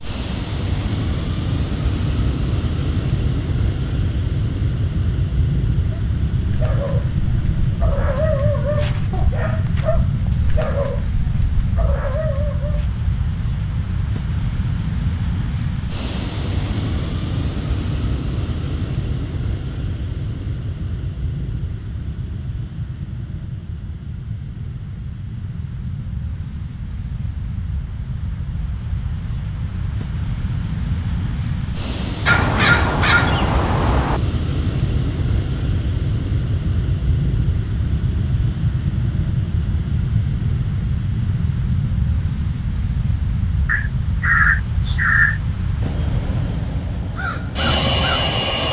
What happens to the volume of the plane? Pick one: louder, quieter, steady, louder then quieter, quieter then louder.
quieter then louder.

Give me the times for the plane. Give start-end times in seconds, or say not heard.
0.0-48.6.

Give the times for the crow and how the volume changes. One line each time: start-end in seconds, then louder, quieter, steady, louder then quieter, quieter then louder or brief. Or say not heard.
32.2-34.2 brief
43.6-48.4 quieter then louder.